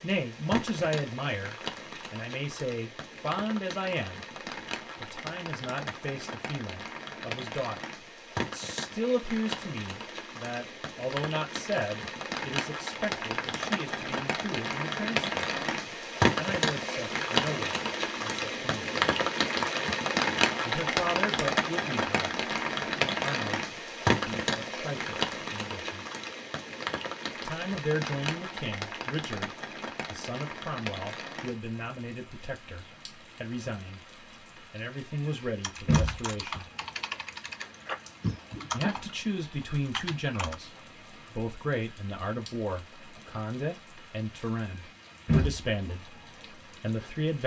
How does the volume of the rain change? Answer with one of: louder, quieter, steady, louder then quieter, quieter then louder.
louder then quieter.